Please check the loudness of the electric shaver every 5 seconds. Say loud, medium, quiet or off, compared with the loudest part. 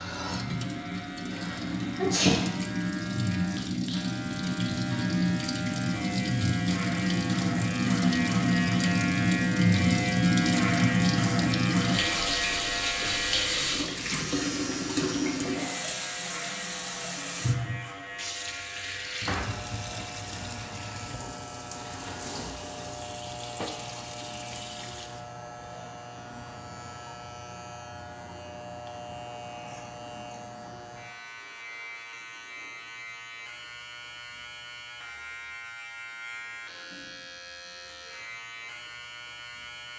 medium, loud, loud, medium, medium, medium, medium, medium.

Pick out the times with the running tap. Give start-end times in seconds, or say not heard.
0.0-25.2.